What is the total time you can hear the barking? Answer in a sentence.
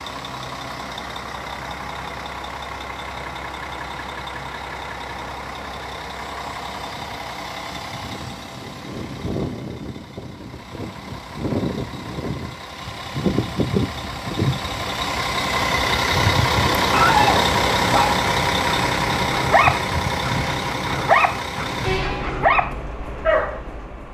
You can hear the barking for 7 seconds altogether.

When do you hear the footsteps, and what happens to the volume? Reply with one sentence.
You can't hear the footsteps here.